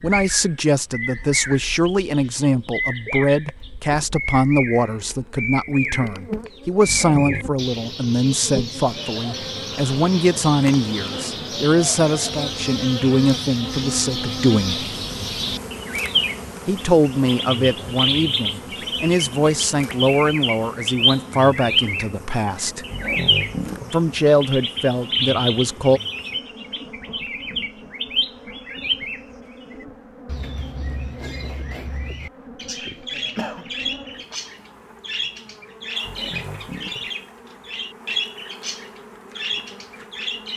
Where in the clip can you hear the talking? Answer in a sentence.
The talking can be heard from 0.0 to 14.8 s, from 16.6 to 22.9 s and from 23.9 to 26.0 s.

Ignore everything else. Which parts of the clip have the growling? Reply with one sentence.
The growling can be heard from 6.8 to 7.5 s, from 22.9 to 23.9 s and from 36.0 to 37.1 s.